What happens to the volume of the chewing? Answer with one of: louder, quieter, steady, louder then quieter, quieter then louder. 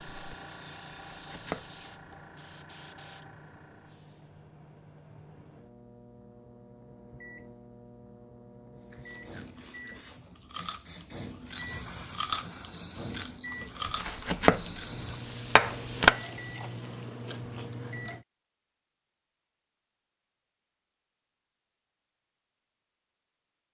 louder then quieter.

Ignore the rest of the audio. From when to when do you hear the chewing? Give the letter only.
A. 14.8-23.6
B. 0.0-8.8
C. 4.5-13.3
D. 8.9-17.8
D.